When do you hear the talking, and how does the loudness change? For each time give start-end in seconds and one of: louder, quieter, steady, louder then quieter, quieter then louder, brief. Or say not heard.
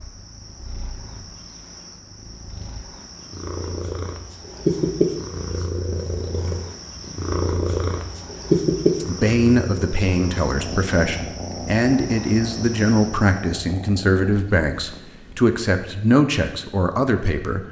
9.0-17.6 steady.